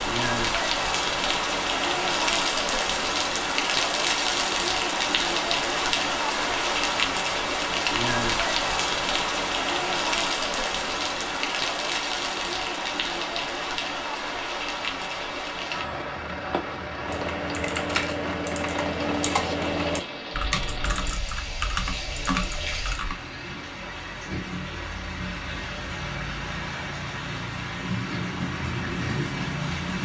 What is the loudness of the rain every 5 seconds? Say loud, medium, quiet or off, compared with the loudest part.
loud, loud, loud, medium, medium, medium.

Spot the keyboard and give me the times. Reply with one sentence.
You can hear the keyboard from 17.1 to 23.1 s.